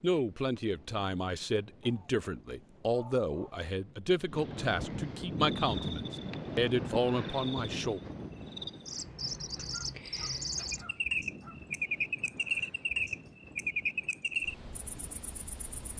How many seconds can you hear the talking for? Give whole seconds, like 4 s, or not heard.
8 s.